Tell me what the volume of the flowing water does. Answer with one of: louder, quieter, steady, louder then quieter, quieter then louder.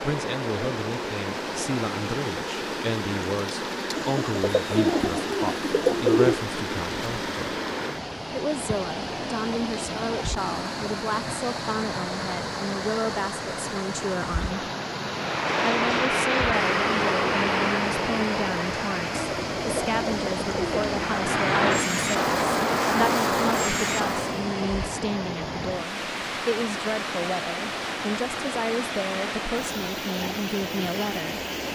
steady.